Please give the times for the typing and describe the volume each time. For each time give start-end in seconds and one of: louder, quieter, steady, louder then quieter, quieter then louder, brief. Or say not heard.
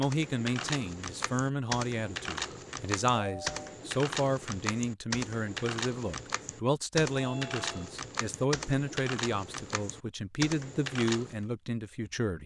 0.0-11.4 steady.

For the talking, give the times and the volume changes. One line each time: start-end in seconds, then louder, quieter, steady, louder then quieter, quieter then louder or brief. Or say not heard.
0.0-12.4 steady.